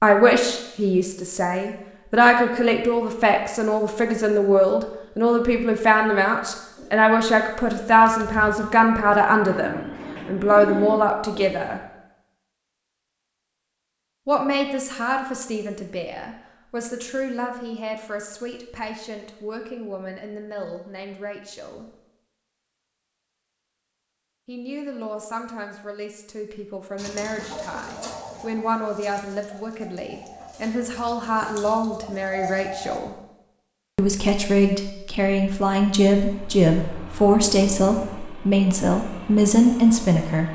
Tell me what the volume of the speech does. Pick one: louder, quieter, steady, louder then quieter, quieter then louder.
quieter then louder.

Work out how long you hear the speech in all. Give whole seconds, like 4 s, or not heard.
35 s.